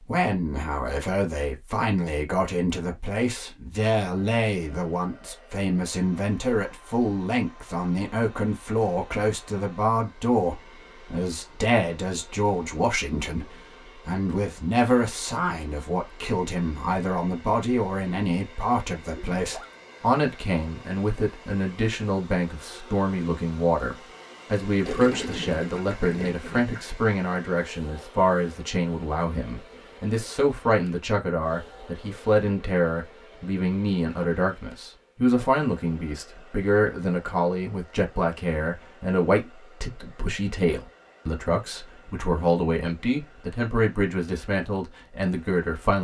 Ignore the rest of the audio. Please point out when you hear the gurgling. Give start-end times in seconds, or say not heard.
19.1-19.8, 24.8-26.9.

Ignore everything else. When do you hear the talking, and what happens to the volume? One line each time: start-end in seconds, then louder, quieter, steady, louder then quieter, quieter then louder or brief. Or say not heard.
0.1-45.9 steady.